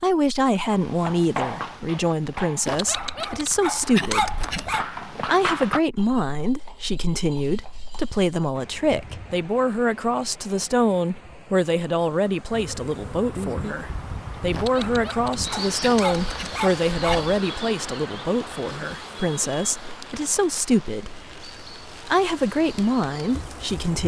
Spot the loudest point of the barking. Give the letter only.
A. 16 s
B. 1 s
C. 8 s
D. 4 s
D.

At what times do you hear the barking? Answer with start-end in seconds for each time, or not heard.
2.6-4.8, 14.5-17.4.